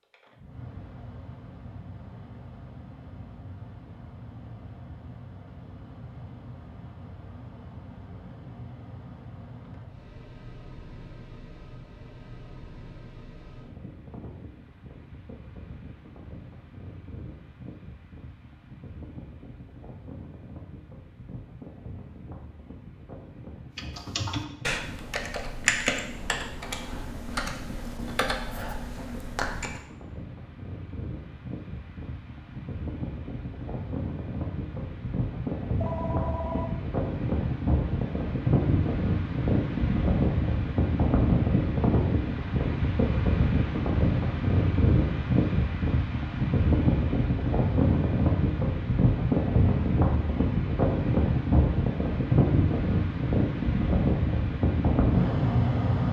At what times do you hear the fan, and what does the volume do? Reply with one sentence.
The fan can be heard from 0.0 to 56.0 s, getting louder.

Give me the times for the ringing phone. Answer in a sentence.
The ringing phone can be heard from 35.8 to 36.8 s.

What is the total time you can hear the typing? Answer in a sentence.
The typing can be heard for 6 seconds in total.